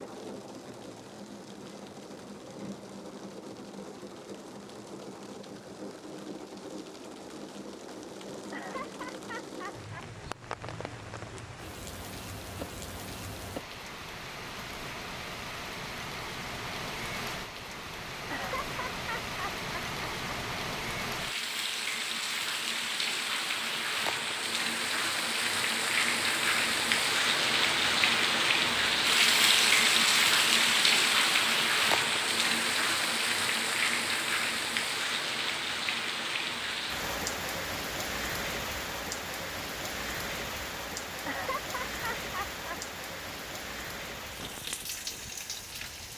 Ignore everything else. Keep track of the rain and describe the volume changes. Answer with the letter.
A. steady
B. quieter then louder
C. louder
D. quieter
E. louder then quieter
E.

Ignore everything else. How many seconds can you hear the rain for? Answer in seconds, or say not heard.
46 s.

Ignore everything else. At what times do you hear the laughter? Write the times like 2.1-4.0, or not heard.
8.5-10.1, 18.3-20.4, 41.2-42.8.